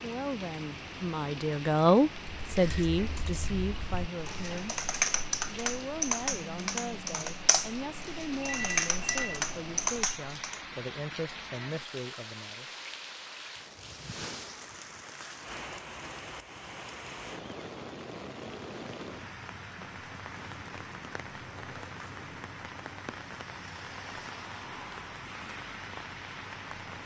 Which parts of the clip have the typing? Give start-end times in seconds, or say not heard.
2.2-10.6.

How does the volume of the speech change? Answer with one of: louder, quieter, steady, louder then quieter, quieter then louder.
quieter.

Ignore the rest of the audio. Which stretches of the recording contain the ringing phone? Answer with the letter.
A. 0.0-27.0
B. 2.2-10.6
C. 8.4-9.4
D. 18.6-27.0
C.